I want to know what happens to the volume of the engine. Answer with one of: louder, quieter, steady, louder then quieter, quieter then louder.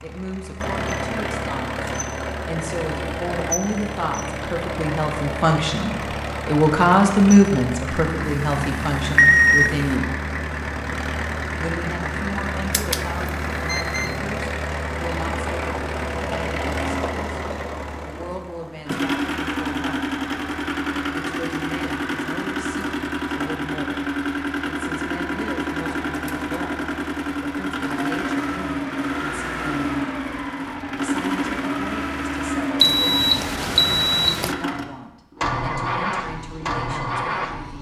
steady.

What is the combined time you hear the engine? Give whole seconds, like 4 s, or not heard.
38 s.